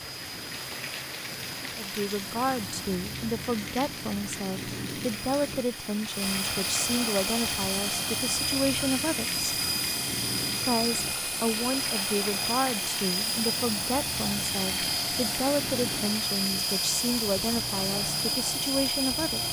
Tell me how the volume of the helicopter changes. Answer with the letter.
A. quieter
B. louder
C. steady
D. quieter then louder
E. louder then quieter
B.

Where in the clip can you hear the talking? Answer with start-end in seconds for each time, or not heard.
1.6-9.4, 10.6-19.4.